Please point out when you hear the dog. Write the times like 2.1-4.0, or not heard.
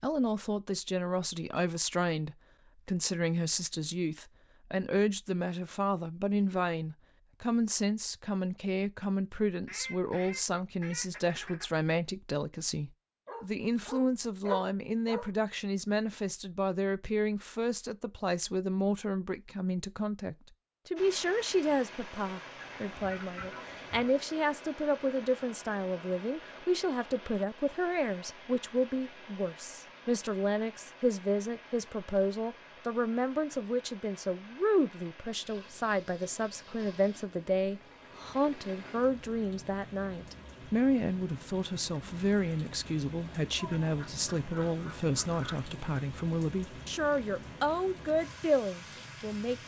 13.2-15.3.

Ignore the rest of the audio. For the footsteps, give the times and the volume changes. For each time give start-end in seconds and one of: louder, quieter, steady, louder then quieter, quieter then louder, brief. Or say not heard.
not heard.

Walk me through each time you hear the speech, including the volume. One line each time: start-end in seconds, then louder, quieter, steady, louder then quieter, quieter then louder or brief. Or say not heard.
0.0-49.5 steady.